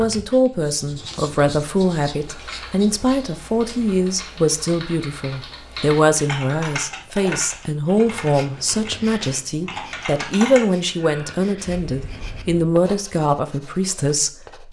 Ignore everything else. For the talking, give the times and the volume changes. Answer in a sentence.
The talking can be heard from 0.0 to 14.6 s, at a steady volume.